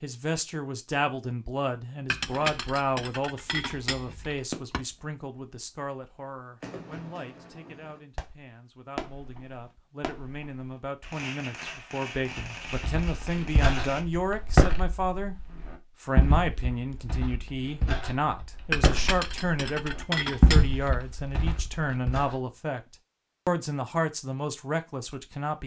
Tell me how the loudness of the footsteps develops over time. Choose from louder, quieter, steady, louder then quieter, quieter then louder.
quieter then louder.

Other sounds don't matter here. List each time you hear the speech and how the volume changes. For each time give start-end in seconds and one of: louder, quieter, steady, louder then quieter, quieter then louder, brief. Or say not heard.
0.0-25.6 quieter then louder.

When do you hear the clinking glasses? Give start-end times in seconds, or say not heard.
2.1-4.8, 18.7-21.1.